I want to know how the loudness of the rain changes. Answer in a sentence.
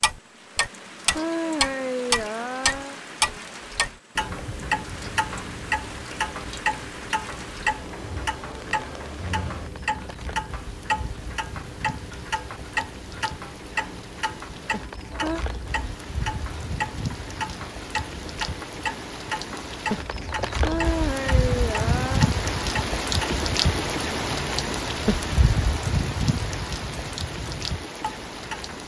The volume of the rain goes up.